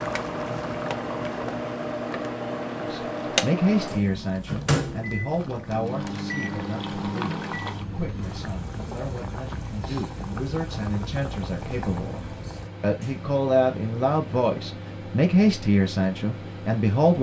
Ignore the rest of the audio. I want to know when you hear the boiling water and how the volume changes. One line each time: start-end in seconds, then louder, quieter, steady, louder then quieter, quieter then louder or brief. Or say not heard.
0.0-12.7 quieter then louder.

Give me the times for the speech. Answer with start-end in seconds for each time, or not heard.
2.8-17.1.